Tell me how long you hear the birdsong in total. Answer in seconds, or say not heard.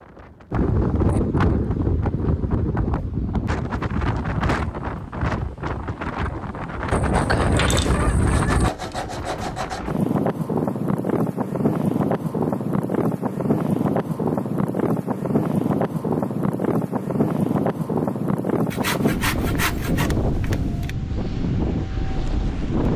not heard.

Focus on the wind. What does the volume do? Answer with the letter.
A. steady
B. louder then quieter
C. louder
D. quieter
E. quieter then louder
A.